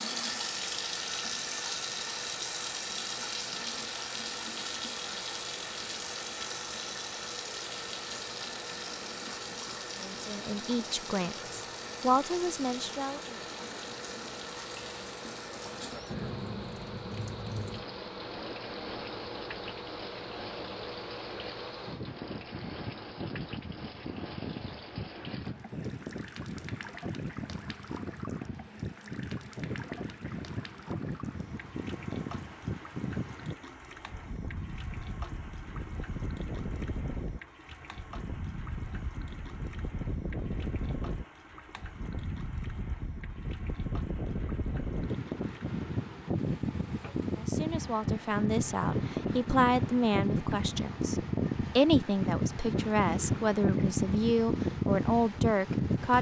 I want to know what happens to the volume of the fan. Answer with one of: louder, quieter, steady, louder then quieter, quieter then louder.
louder.